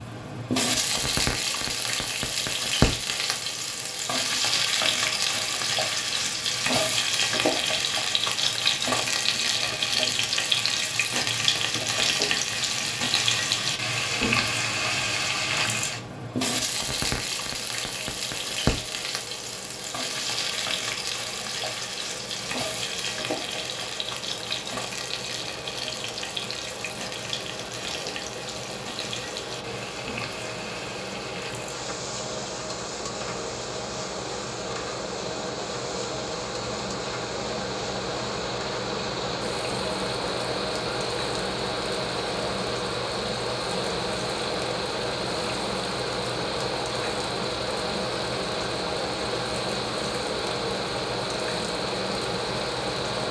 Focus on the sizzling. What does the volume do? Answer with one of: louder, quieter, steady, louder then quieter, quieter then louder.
quieter.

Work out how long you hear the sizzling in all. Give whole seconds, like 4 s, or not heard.
53 s.